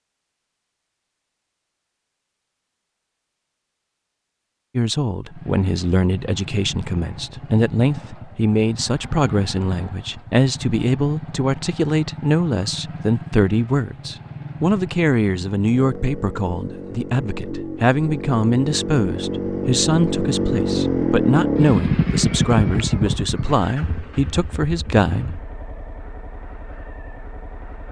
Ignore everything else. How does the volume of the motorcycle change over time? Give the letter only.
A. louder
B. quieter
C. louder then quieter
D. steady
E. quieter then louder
C.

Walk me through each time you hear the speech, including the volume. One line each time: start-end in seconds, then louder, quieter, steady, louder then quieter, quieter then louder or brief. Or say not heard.
4.8-25.4 steady.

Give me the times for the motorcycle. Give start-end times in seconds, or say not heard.
5.2-27.8.